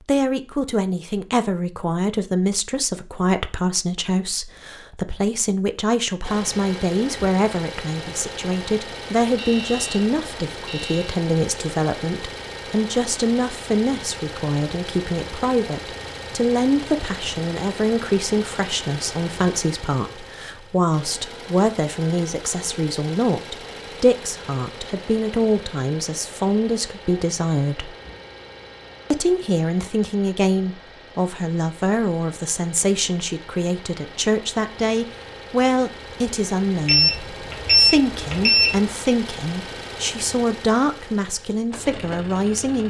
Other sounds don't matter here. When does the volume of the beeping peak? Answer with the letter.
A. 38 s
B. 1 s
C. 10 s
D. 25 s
A.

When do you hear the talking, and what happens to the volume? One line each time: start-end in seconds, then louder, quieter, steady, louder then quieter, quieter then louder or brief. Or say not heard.
0.1-27.9 steady
29.1-42.8 steady.